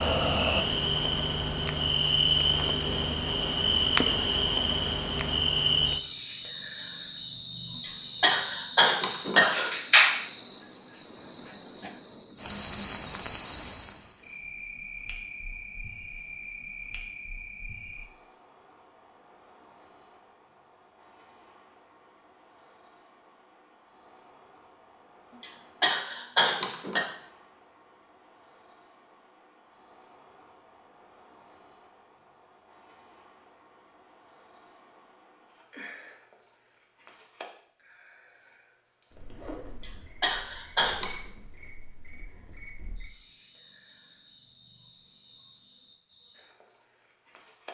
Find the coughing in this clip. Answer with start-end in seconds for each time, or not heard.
7.8-9.8, 25.4-27.1, 39.8-41.1.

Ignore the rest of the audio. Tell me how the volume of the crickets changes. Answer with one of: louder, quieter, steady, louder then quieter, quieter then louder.
quieter.